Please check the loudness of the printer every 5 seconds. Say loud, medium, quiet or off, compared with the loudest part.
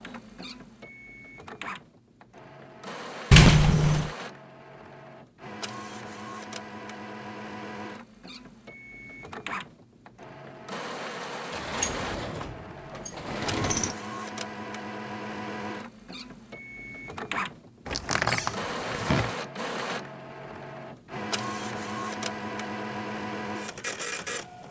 medium, medium, loud, loud, loud.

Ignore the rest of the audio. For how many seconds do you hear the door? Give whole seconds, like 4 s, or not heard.
5 s.